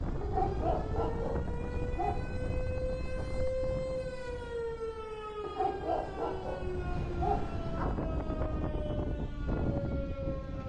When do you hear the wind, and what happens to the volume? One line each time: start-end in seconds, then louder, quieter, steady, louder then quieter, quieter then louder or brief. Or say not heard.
0.0-10.6 quieter then louder.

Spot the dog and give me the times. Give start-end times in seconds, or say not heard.
0.2-2.1, 5.4-7.9.